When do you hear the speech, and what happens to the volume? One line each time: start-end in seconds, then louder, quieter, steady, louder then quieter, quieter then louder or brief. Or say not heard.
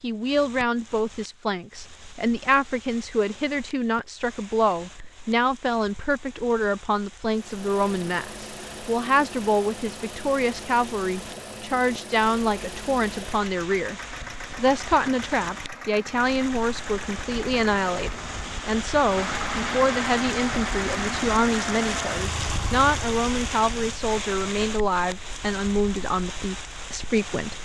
0.0-27.5 steady.